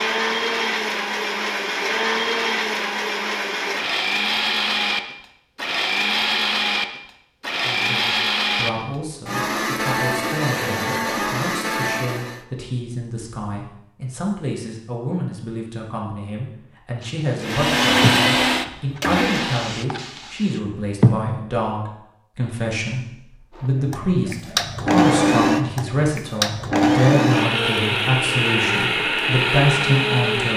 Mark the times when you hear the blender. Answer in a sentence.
The blender can be heard from 0.0 to 12.4 s, from 17.4 to 19.7 s and from 23.6 to 30.5 s.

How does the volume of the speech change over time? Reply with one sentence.
The volume of the speech goes up.